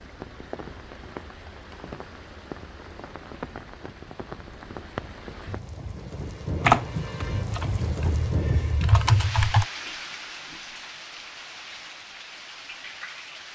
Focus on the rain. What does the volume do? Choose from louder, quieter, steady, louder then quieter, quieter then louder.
louder then quieter.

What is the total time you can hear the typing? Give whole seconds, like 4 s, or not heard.
3 s.